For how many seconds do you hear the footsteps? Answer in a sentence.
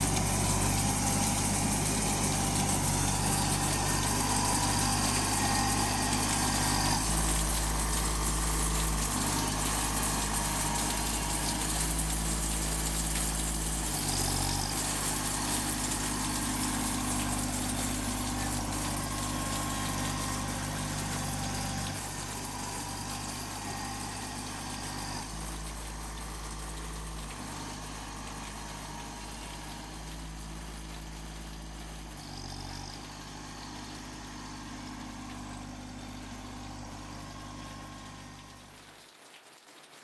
The footsteps can't be heard in this clip.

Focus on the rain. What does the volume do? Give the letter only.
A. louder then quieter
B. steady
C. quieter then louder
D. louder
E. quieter
E.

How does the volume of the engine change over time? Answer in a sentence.
The volume of the engine goes down.